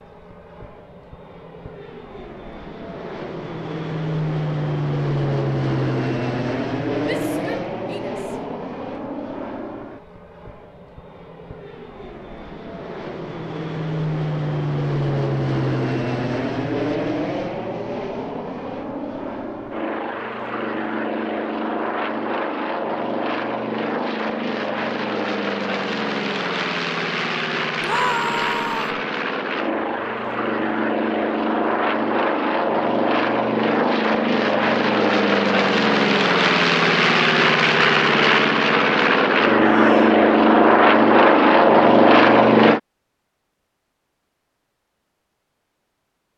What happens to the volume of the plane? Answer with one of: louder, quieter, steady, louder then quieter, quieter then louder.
louder.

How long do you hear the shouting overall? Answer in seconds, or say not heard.
3 s.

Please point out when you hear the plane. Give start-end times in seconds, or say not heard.
0.0-42.8.